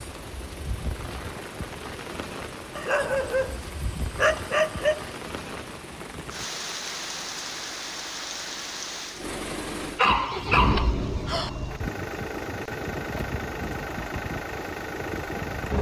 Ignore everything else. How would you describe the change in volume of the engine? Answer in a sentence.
The loudness of the engine goes up.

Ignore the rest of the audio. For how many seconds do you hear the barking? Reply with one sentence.
You can hear the barking for 4 seconds altogether.